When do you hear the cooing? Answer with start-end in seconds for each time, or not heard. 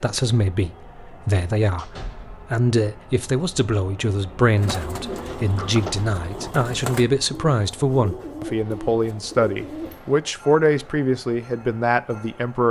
4.5-10.0.